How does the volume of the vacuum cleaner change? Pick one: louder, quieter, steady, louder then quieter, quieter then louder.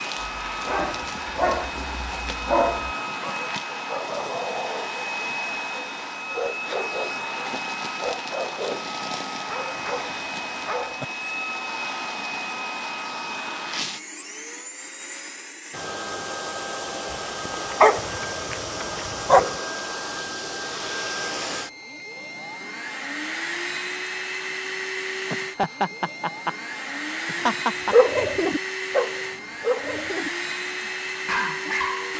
steady.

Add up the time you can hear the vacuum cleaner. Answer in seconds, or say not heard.
32 s.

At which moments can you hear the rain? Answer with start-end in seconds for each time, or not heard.
not heard.